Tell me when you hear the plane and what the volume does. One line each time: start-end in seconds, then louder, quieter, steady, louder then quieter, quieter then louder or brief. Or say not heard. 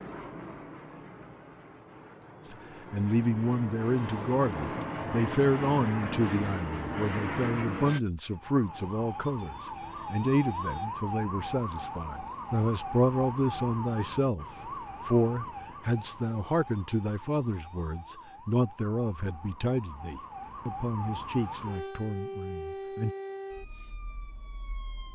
0.0-8.0 louder.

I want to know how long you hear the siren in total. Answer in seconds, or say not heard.
17 s.